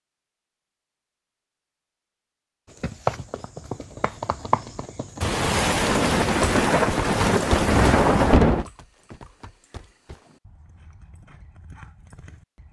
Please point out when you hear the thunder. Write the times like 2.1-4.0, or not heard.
5.2-8.7.